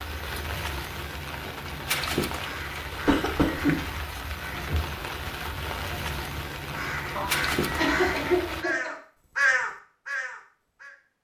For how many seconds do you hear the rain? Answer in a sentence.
The rain can be heard for 9 seconds in total.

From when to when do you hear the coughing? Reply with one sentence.
You can hear the coughing from 3.0 to 3.9 s and from 7.2 to 8.9 s.